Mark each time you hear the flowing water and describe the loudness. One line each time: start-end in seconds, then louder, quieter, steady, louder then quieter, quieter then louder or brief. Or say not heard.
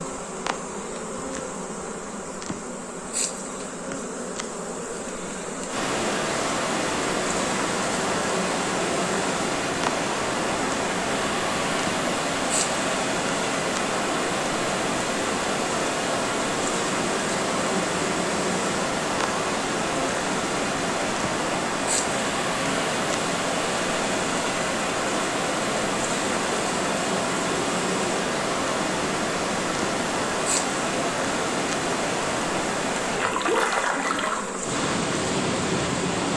5.7-36.3 steady.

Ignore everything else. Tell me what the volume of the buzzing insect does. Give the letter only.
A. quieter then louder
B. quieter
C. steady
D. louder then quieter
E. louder
C.